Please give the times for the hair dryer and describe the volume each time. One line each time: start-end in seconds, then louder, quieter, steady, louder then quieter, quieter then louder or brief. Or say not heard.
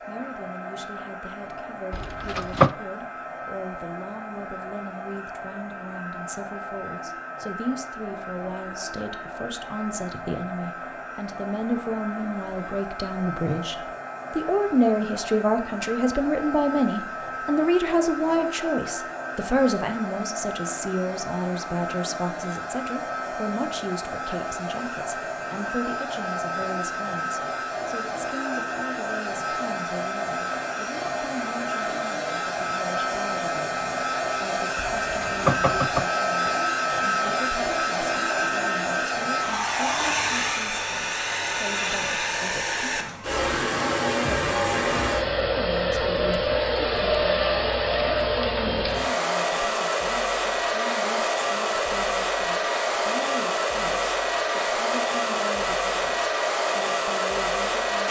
0.0-58.0 louder.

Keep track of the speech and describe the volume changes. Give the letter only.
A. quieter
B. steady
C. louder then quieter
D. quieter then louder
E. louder
C.